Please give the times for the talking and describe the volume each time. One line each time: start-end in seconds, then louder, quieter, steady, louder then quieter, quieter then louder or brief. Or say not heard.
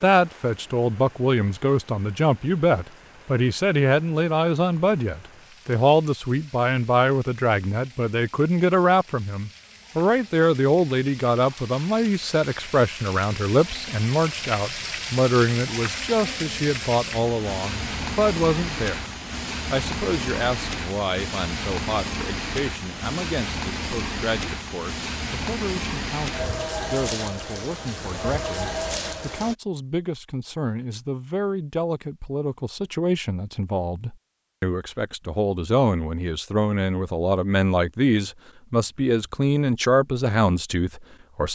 0.0-41.5 quieter then louder.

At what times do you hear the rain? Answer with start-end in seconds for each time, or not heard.
0.1-29.6.